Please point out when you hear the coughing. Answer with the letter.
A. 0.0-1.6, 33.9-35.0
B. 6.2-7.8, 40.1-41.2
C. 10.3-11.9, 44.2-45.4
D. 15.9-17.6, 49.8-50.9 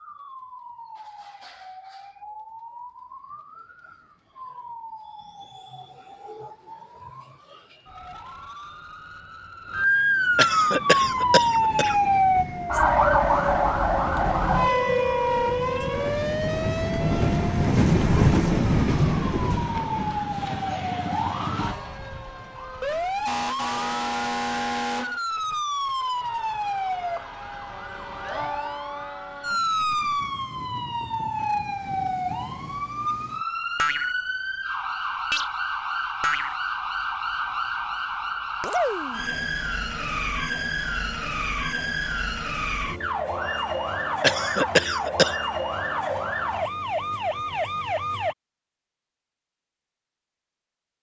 C.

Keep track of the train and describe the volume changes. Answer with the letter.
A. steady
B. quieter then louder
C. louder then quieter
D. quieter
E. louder
E.